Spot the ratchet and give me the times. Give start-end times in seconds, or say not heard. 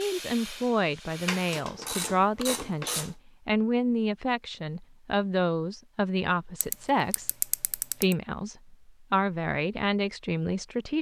1.2-3.1, 6.6-8.2.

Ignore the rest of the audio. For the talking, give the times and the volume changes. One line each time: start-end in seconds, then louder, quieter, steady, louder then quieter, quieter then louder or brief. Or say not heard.
0.0-10.9 steady.